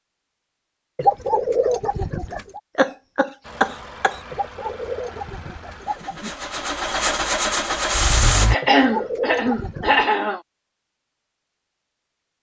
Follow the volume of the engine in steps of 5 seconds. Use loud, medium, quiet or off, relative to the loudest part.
quiet, loud, off.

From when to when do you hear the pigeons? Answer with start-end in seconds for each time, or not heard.
0.9-2.6, 4.3-6.3, 8.6-10.1.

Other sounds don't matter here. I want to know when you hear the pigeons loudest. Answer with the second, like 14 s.
1 s.